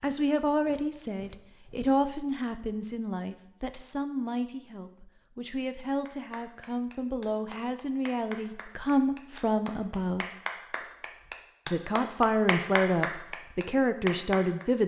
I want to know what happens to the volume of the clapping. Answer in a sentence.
The loudness of the clapping goes up.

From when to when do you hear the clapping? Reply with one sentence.
The clapping can be heard from 6.0 to 14.7 s.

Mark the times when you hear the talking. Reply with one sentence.
You can hear the talking from 0.0 to 10.2 s and from 11.7 to 14.8 s.